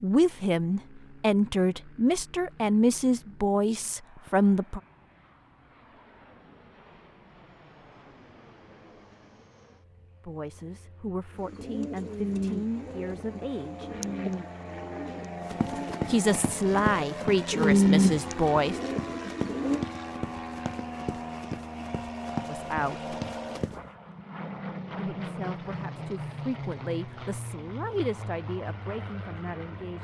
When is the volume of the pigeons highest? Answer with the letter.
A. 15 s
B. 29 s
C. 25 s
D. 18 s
D.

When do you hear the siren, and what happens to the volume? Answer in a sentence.
You can't hear the siren here.